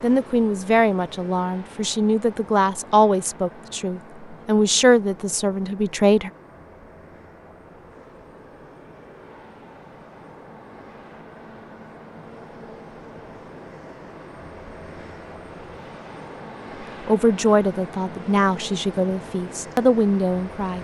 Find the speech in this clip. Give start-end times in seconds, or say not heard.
0.0-6.3, 17.1-20.7.